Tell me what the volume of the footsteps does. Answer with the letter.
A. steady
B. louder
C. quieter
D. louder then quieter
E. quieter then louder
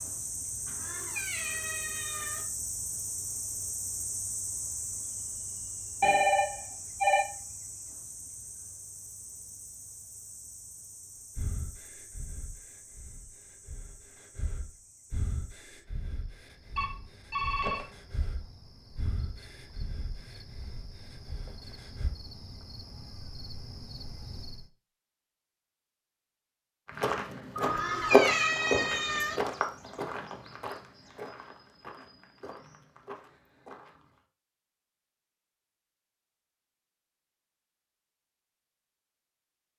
C.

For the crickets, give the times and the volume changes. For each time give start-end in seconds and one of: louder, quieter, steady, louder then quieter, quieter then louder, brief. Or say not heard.
0.0-24.7 quieter then louder.